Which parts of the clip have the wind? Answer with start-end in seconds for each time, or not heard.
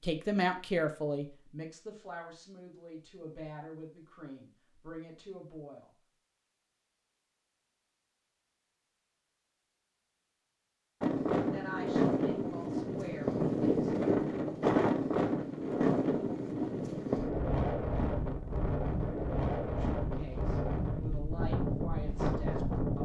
11.0-23.0.